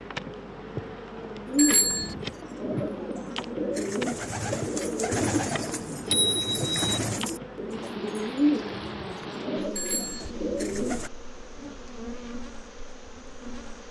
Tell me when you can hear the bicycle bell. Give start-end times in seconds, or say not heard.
1.6-2.1, 5.7-7.0, 9.8-10.3.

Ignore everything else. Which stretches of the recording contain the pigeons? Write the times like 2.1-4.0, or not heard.
1.4-11.1.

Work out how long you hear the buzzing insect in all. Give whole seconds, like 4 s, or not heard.
14 s.